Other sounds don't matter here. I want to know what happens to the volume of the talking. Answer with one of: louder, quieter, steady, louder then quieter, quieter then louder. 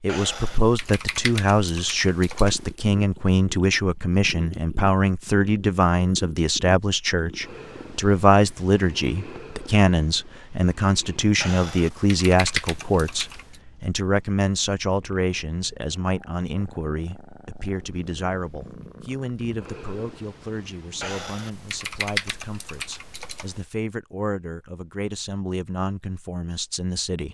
quieter.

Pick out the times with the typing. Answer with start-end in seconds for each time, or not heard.
0.1-2.7, 11.4-13.6, 21.0-23.6.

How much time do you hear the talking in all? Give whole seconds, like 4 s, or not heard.
27 s.